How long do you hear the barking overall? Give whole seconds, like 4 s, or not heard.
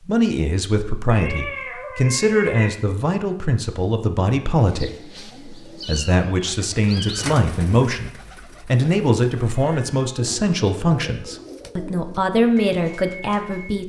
not heard.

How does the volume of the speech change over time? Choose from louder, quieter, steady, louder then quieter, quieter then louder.
steady.